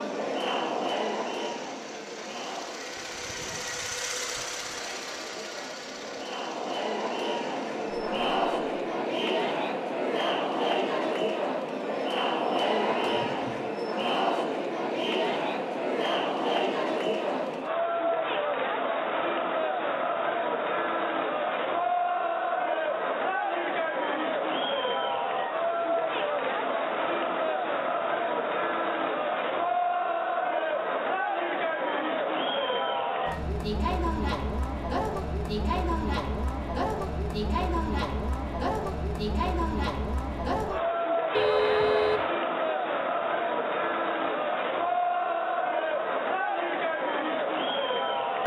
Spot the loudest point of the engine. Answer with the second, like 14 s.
4 s.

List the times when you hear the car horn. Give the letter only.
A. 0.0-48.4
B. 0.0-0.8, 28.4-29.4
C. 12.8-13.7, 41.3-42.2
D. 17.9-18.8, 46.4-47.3
C.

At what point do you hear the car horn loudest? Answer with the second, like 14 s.
42 s.